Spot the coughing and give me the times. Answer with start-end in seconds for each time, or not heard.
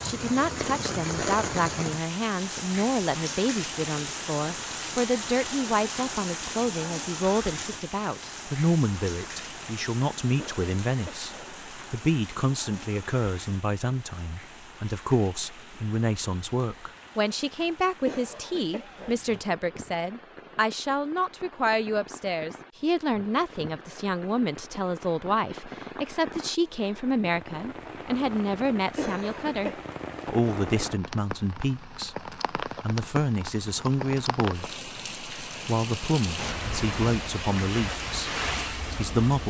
10.3-11.6, 18.0-19.2, 28.9-29.9.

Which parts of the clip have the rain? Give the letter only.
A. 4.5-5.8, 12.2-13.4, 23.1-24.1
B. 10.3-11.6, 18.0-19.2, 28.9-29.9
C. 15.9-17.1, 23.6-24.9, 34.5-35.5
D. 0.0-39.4
D.